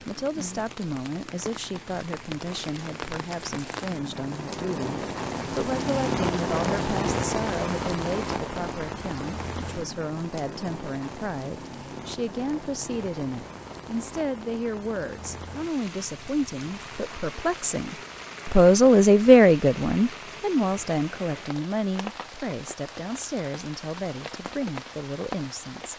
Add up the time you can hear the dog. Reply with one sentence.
You can't hear the dog here.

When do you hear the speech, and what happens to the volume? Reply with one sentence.
You can hear the speech from 0.0 to 25.9 s, getting louder then quieter.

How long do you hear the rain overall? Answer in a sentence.
You can hear the rain for 26 seconds altogether.